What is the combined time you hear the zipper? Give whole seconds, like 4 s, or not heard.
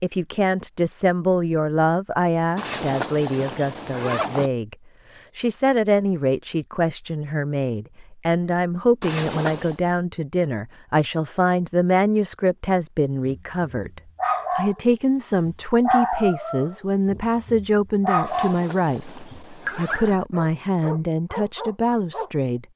5 s.